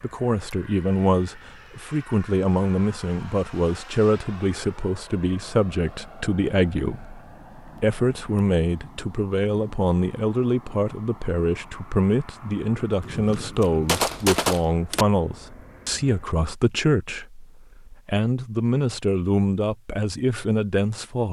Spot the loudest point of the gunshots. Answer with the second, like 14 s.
14 s.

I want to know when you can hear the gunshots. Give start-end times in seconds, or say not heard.
13.0-15.1.